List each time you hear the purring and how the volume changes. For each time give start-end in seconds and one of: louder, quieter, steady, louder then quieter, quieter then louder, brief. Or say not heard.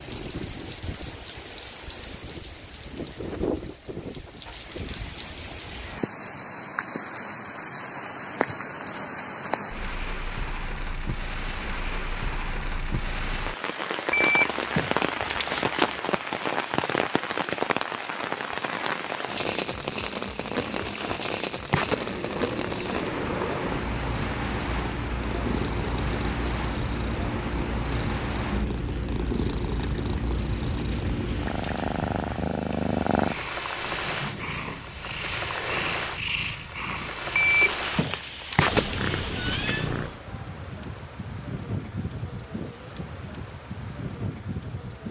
20.2-40.2 steady.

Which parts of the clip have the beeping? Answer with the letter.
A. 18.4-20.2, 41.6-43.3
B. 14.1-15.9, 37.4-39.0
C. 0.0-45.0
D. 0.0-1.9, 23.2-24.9
B.